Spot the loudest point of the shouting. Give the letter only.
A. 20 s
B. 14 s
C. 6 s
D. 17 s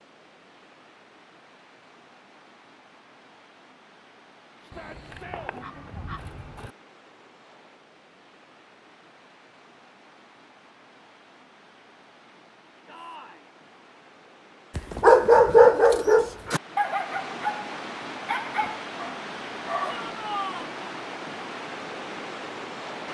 A.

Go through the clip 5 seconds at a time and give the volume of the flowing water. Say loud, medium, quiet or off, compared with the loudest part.
quiet, quiet, quiet, loud, loud.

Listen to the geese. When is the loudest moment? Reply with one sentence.
The volume of the geese peaks at 6 seconds.